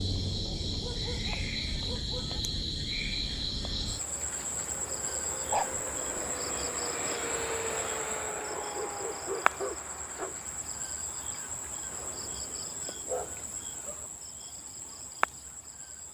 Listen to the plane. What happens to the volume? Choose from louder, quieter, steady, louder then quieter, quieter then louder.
louder then quieter.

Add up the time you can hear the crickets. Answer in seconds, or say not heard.
16 s.